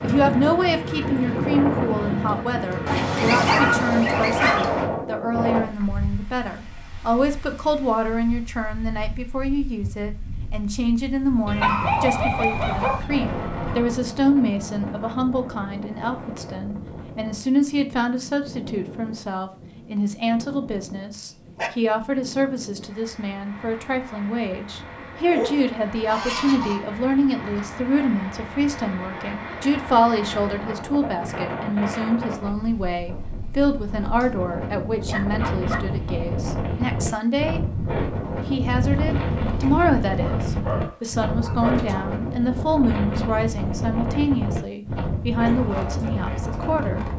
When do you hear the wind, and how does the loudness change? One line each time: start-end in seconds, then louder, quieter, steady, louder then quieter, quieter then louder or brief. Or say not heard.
0.0-47.1 quieter then louder.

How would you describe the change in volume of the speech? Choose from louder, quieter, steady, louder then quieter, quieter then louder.
steady.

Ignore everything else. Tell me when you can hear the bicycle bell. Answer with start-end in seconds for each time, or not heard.
not heard.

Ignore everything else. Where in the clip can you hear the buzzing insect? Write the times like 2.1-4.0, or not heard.
not heard.